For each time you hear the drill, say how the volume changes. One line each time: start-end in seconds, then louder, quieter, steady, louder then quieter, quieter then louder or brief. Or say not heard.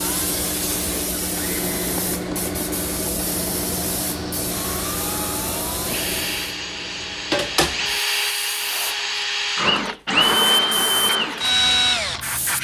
0.0-12.6 louder.